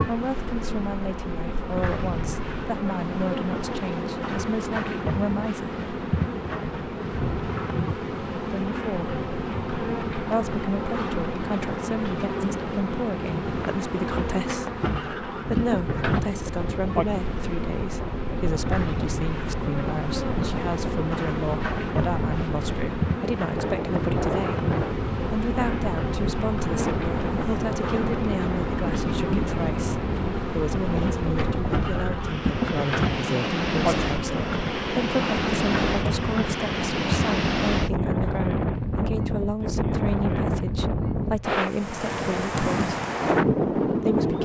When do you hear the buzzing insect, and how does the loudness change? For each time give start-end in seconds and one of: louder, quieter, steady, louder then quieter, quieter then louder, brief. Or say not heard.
0.0-37.4 steady.